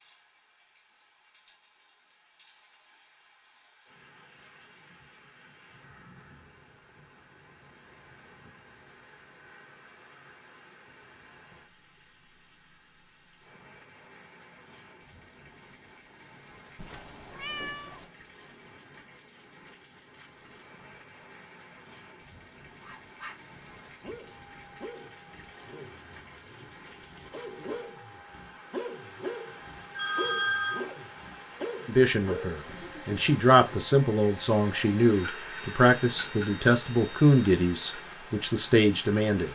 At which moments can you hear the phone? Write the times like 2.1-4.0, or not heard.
29.2-30.9.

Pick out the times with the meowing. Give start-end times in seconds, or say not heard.
16.8-18.1.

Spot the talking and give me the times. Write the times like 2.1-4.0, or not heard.
31.9-39.4.